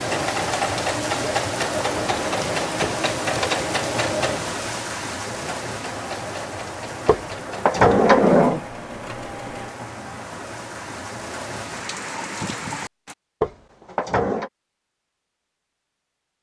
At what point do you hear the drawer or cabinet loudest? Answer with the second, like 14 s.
8 s.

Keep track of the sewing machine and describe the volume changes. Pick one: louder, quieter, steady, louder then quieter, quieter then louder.
quieter.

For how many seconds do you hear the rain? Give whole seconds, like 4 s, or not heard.
13 s.